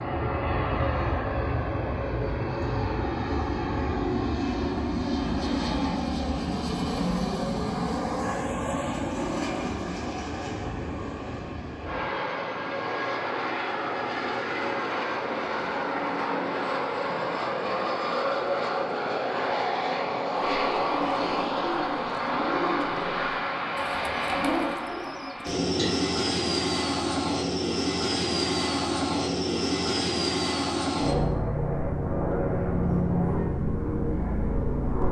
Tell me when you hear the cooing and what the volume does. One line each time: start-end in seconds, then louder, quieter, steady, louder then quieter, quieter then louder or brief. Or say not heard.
20.4-25.9 steady.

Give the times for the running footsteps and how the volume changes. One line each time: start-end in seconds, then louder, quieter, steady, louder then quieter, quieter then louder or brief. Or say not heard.
not heard.